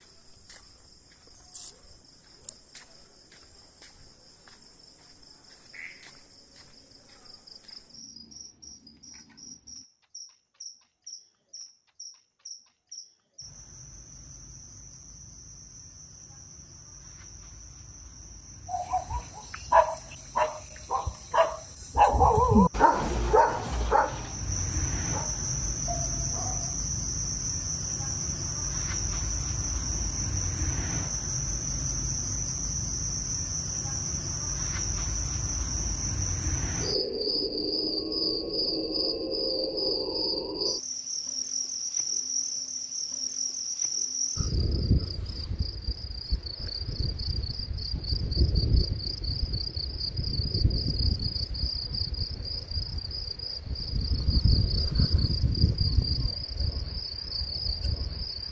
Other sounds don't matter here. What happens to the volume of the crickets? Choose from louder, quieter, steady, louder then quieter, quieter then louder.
louder.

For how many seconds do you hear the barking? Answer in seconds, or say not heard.
8 s.